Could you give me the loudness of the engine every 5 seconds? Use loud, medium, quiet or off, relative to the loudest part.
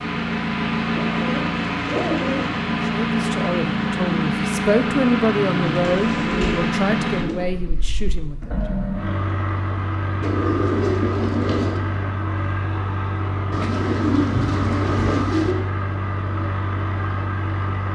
loud, loud, medium, medium.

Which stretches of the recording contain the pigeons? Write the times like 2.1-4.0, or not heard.
0.9-2.6, 5.7-7.5, 10.2-11.8, 13.5-15.6.